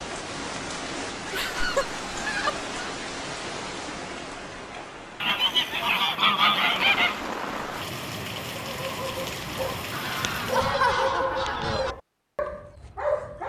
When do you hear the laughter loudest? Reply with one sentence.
The volume of the laughter peaks at 11 seconds.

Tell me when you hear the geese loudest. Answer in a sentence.
The volume of the geese peaks at 6 seconds.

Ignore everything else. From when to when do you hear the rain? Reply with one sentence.
The rain can be heard from 0.0 to 10.8 s.